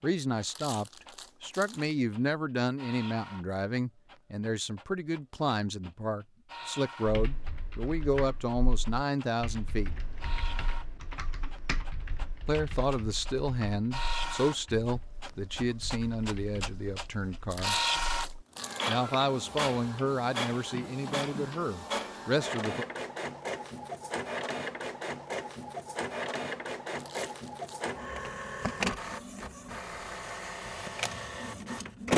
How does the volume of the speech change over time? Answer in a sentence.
The loudness of the speech stays about the same.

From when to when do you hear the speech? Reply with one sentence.
The speech can be heard from 0.0 to 9.9 s, from 12.4 to 17.8 s and from 18.9 to 22.9 s.